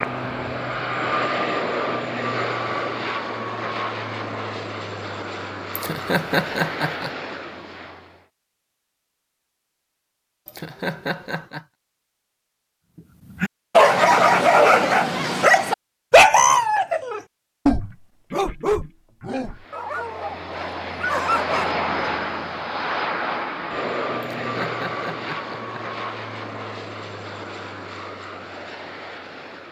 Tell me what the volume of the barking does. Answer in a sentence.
The loudness of the barking goes down.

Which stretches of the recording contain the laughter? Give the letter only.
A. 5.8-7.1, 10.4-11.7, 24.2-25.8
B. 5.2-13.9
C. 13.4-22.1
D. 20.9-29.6
A.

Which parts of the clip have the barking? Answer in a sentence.
The barking can be heard from 13.4 to 22.1 s.